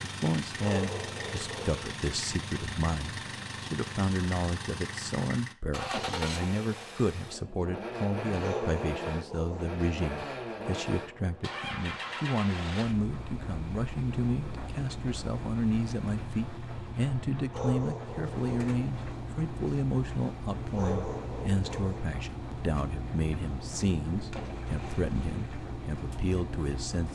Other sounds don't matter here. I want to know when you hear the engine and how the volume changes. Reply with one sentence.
You can hear the engine from 0.0 to 27.1 s, at a steady volume.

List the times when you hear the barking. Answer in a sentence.
The barking can be heard from 0.6 to 1.9 s, from 8.4 to 9.8 s, from 17.5 to 18.8 s and from 20.8 to 22.1 s.